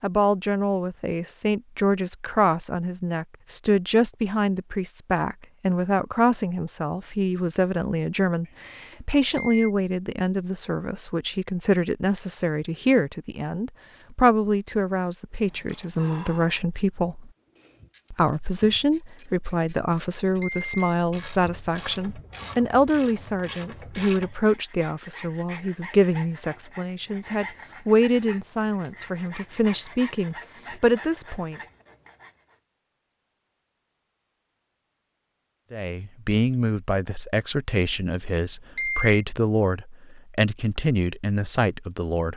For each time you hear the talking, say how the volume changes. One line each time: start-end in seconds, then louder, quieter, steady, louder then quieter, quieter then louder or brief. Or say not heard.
0.0-17.3 steady
18.1-31.6 steady
35.7-42.3 steady.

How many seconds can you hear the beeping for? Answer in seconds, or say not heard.
4 s.